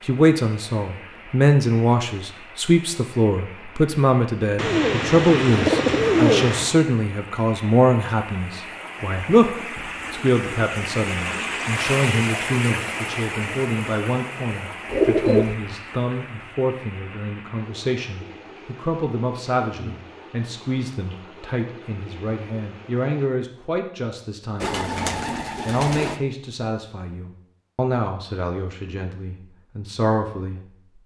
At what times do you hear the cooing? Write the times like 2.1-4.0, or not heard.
4.5-6.8, 14.9-15.6, 24.6-26.2.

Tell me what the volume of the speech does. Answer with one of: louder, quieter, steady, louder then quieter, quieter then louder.
quieter.